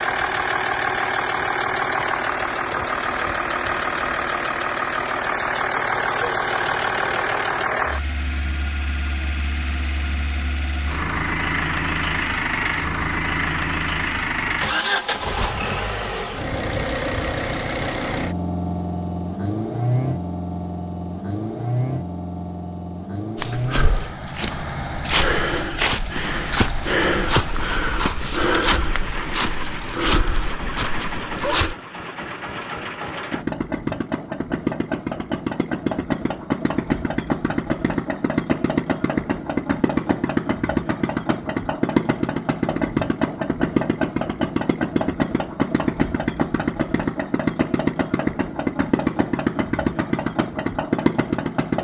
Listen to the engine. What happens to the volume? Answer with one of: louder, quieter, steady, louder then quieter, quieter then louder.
quieter then louder.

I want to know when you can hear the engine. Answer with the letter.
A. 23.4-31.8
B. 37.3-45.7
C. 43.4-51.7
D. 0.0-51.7
D.